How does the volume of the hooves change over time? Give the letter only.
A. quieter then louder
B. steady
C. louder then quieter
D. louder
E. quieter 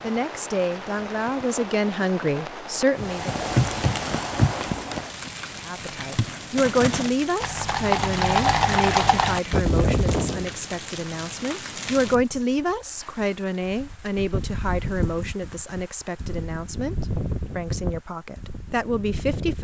A.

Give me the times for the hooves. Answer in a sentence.
You can hear the hooves from 3.0 to 10.5 s.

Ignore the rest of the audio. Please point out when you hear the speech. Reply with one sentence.
You can hear the speech from 0.0 to 3.4 s, from 5.7 to 16.9 s and from 17.6 to 19.5 s.